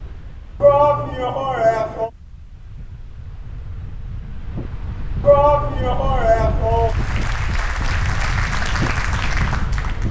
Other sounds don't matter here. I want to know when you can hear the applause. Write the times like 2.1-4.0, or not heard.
6.6-10.0.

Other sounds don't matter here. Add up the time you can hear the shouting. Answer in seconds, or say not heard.
3 s.